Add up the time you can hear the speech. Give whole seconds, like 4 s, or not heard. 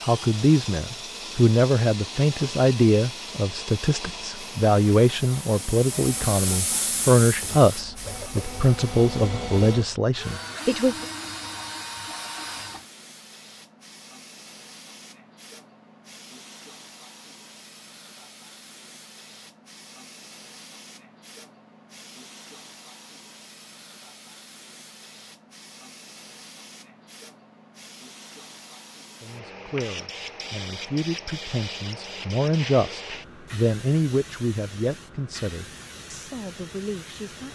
19 s.